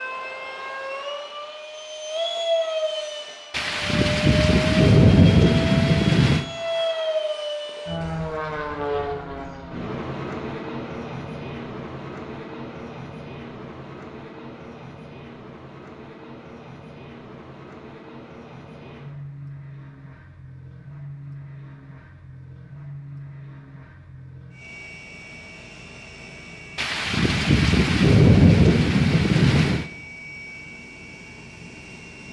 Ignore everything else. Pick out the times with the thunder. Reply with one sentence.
The thunder can be heard from 3.5 to 6.5 s and from 26.8 to 29.9 s.